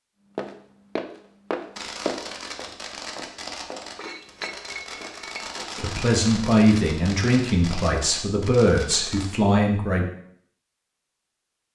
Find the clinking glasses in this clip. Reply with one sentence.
You can hear the clinking glasses from 4.0 to 5.5 s.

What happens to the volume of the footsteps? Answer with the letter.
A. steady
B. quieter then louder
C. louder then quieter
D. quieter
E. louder
D.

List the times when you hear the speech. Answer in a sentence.
You can hear the speech from 5.8 to 10.1 s.